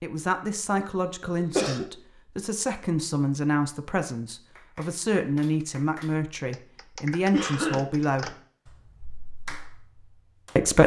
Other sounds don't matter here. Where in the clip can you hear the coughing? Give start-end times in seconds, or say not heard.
0.8-1.9, 7.3-8.3.